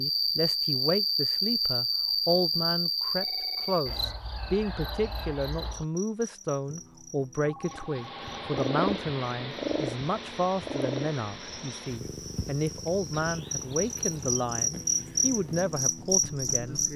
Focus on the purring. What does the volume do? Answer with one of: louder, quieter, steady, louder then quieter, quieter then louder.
quieter.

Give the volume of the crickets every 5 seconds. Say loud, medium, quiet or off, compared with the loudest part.
loud, quiet, medium, loud.